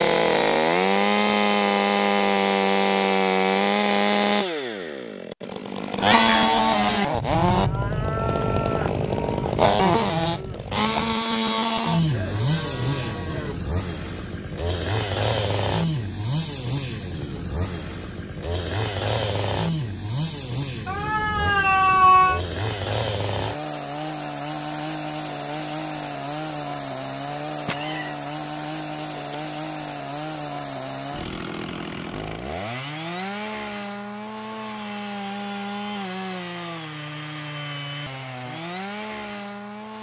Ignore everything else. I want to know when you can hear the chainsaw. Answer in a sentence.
The chainsaw can be heard from 0.0 to 39.9 s.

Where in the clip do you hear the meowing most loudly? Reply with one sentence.
The volume of the meowing peaks at 22 seconds.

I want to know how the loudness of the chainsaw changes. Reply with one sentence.
The loudness of the chainsaw goes down.